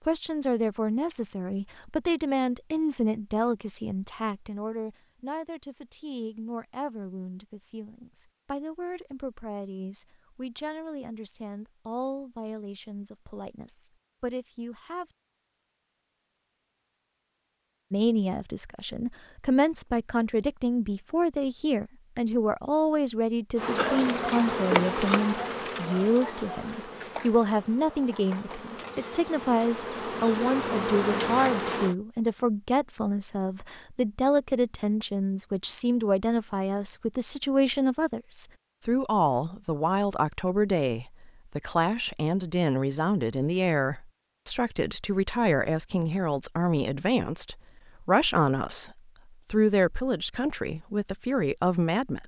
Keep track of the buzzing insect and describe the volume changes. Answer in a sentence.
The loudness of the buzzing insect goes down, then up.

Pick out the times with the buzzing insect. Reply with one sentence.
The buzzing insect can be heard from 23.6 to 31.9 s.